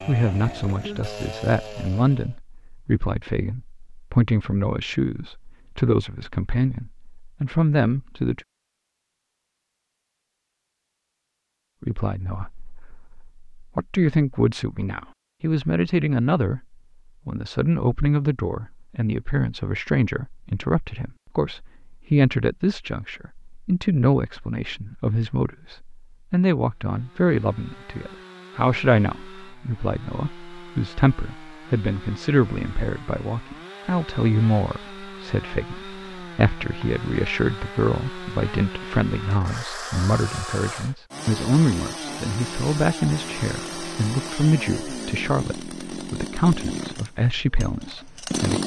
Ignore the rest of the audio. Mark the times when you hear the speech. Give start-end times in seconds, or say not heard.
0.1-8.4, 11.8-48.6.